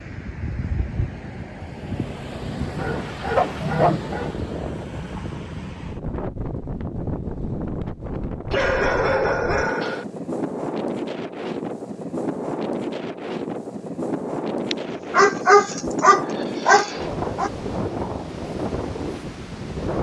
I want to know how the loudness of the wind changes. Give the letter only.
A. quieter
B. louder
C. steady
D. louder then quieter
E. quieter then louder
C.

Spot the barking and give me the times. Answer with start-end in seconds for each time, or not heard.
2.8-4.3, 8.5-10.1, 14.7-17.5.